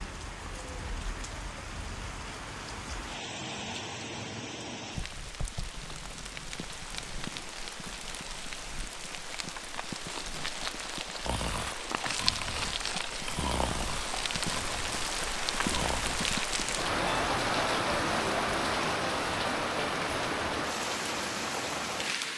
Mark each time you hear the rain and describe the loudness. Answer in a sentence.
The rain can be heard from 0.0 to 22.3 s, getting louder.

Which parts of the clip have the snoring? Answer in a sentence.
You can hear the snoring from 11.2 to 16.8 s.